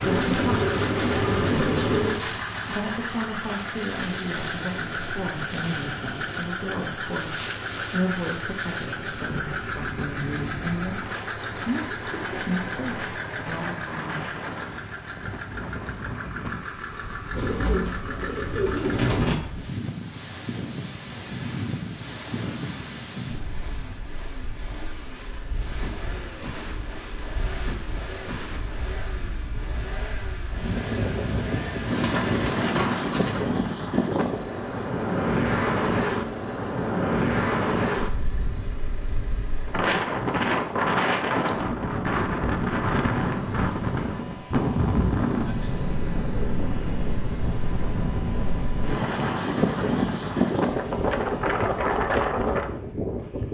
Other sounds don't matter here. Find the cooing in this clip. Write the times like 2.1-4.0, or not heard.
0.0-2.2, 17.3-19.4, 31.9-33.5, 45.6-47.1.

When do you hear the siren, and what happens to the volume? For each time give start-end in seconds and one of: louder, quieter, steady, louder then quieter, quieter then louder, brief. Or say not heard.
not heard.